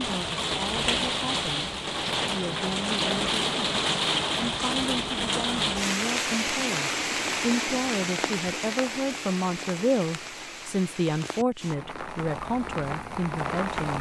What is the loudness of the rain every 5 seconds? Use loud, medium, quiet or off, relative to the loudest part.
loud, loud, medium.